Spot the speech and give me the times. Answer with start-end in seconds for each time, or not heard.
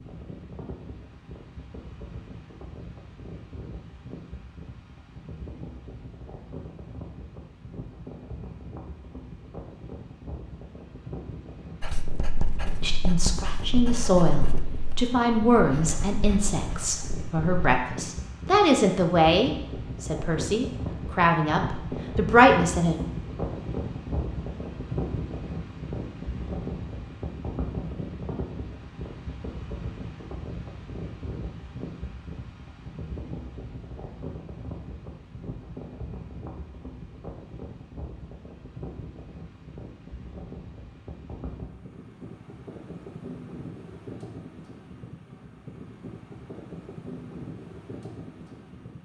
12.8-22.9.